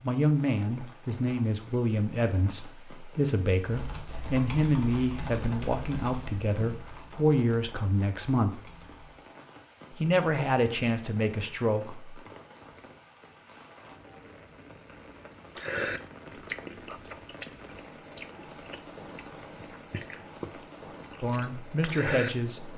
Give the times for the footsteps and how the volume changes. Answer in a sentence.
The footsteps can't be heard in this clip.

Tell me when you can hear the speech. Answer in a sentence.
You can hear the speech from 0.0 to 8.6 s, from 9.9 to 12.2 s and from 21.2 to 22.7 s.